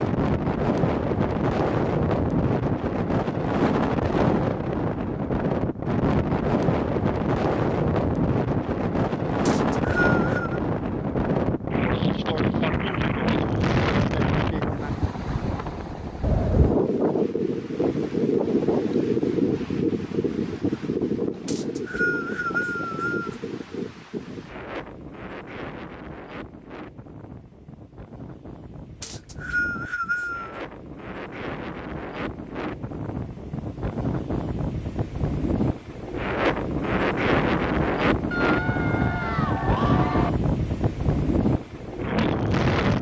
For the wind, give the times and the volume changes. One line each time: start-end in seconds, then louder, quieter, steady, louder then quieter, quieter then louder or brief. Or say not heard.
0.0-42.9 quieter then louder.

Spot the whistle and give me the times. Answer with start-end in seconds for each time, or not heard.
9.4-10.6, 21.4-23.4, 29.0-30.6.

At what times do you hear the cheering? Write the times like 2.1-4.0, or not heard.
38.3-40.3.